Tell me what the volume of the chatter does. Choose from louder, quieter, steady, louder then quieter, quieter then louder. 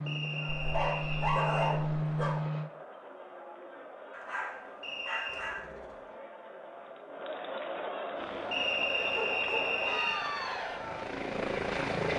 louder.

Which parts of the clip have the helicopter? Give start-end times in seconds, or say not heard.
0.0-2.7, 8.2-12.1.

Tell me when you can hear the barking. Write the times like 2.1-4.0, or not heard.
0.6-2.4, 4.1-6.0, 9.0-10.1.